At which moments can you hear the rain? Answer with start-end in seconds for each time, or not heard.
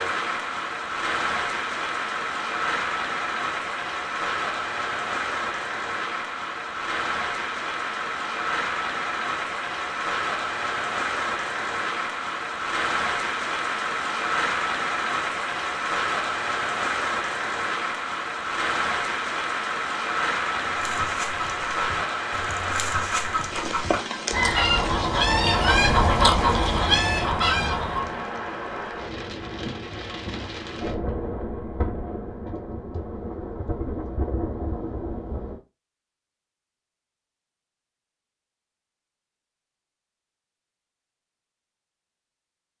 0.0-35.6.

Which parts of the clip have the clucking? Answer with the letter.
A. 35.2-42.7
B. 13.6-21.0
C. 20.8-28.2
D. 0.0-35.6
C.